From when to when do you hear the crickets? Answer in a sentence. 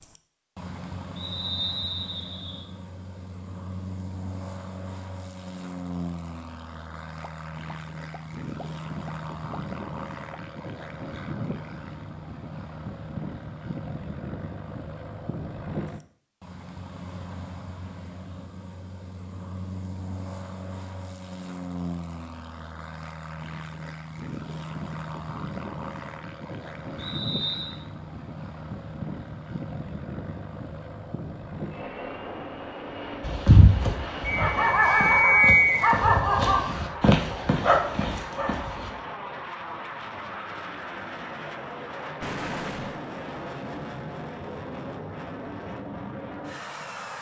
The crickets can't be heard in this clip.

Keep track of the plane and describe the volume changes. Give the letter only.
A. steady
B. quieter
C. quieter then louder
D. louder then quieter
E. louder
A.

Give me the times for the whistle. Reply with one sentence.
The whistle can be heard from 1.1 to 2.6 s, from 26.9 to 27.8 s and from 34.2 to 35.9 s.